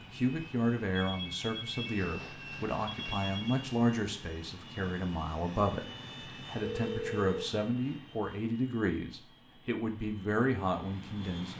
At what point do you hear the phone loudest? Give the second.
7 s.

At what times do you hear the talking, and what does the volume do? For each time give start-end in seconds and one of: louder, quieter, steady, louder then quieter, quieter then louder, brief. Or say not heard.
0.0-11.5 steady.